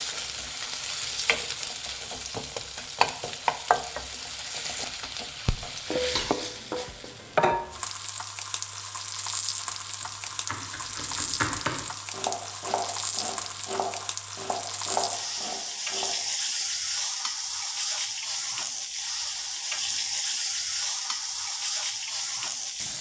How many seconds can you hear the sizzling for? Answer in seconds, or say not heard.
23 s.